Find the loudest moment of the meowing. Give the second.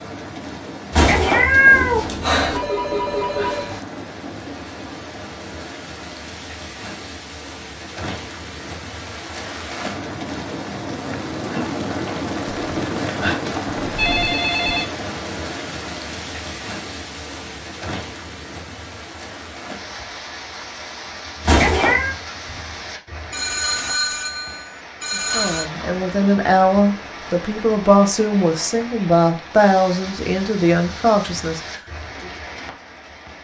2 s.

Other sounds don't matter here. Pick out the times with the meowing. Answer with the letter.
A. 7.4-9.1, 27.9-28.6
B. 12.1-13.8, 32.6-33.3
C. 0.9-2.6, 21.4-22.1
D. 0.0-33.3
C.